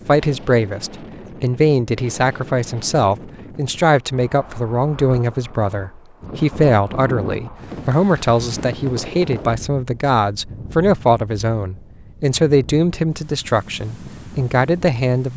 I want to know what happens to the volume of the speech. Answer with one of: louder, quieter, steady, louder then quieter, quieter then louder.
steady.